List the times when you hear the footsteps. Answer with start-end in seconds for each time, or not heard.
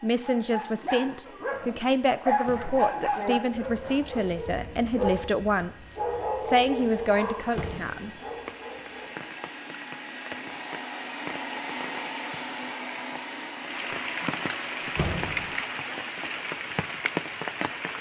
not heard.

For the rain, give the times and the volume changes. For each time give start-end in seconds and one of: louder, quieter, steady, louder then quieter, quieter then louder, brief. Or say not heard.
8.4-17.9 louder.